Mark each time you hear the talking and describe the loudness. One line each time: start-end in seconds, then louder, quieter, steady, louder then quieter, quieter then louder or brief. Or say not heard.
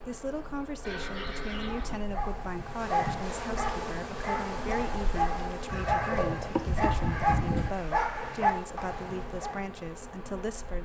0.1-10.8 steady.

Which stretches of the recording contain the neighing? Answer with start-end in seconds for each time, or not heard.
0.8-2.0, 5.7-7.7.